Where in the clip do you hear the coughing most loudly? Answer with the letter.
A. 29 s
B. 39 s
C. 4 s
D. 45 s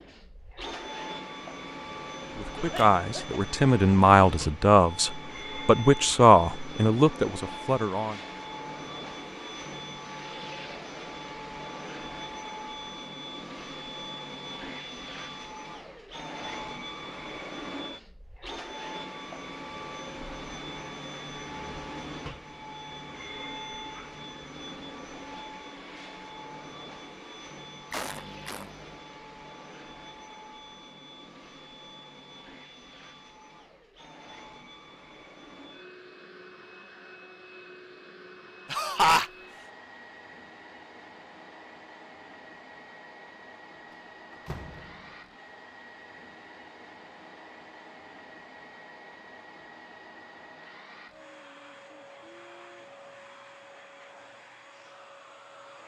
B.